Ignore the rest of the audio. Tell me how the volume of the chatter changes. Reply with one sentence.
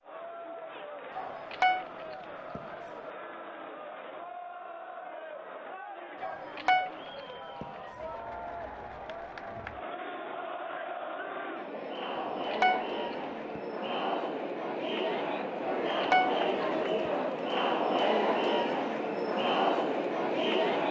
The loudness of the chatter goes up.